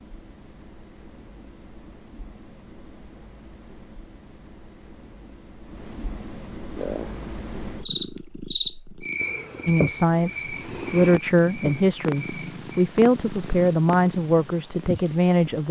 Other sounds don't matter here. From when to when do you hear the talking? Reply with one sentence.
The talking can be heard from 9.7 to 15.6 s.